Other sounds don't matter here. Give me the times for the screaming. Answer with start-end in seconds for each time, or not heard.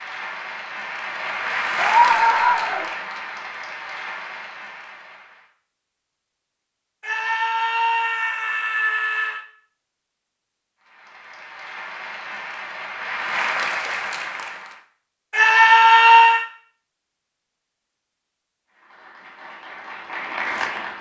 1.8-2.9, 7.0-9.4, 15.3-16.4.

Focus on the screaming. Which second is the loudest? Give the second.
16 s.